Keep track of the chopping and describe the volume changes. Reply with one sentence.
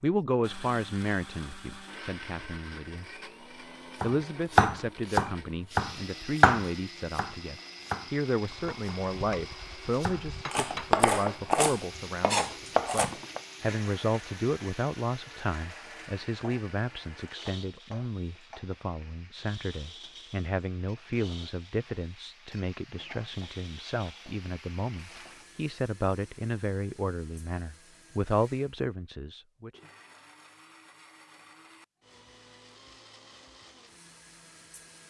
The loudness of the chopping goes down, then up.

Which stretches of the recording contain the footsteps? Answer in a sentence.
You can't hear the footsteps here.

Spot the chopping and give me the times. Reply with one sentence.
You can hear the chopping from 4.0 to 13.4 s.